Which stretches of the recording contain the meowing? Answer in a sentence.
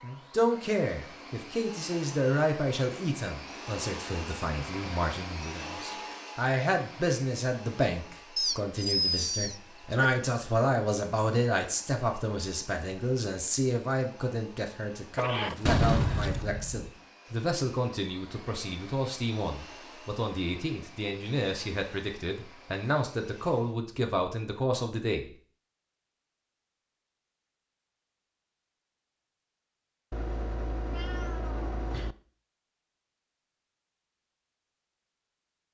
You can hear the meowing from 8.3 to 10.1 s, from 15.2 to 16.4 s and from 30.1 to 32.1 s.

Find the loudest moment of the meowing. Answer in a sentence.
The loudest moment of the meowing is at 9 seconds.